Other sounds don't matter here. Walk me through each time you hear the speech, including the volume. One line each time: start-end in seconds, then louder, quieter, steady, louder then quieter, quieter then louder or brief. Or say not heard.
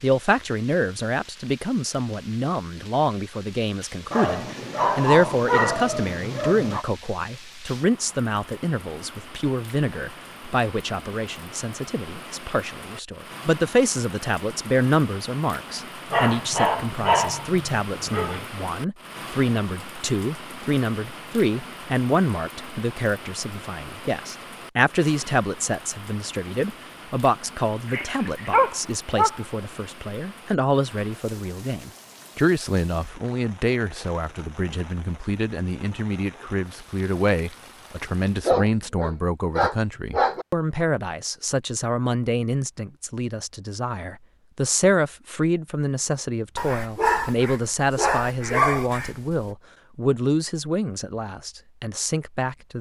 0.0-52.7 steady.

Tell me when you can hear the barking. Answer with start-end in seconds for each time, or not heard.
4.1-6.8, 16.1-18.4, 27.9-29.4, 38.5-40.5, 46.5-49.5.